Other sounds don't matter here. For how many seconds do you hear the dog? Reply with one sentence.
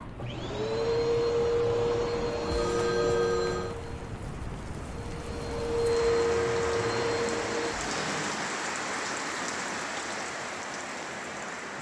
The dog can't be heard in this clip.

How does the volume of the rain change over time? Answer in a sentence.
The loudness of the rain goes up.